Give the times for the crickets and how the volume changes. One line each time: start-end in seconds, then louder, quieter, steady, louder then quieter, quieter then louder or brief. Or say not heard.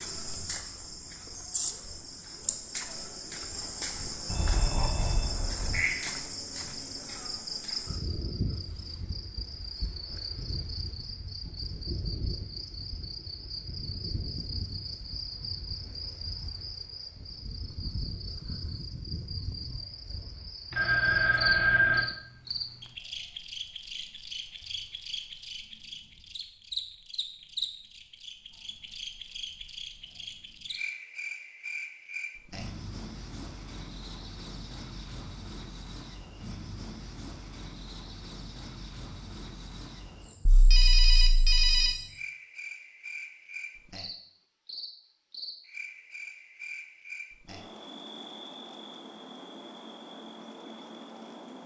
0.0-51.6 quieter.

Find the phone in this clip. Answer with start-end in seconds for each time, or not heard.
4.2-5.8, 20.7-22.1, 40.5-42.0.